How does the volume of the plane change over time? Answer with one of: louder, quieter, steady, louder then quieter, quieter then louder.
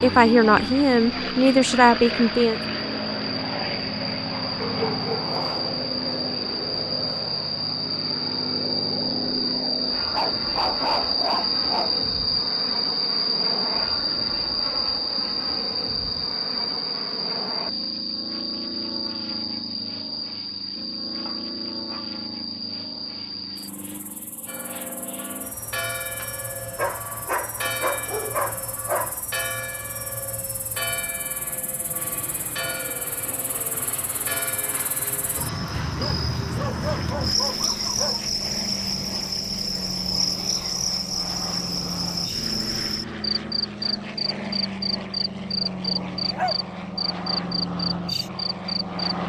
quieter then louder.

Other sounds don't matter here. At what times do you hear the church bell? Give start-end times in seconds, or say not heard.
24.4-35.8.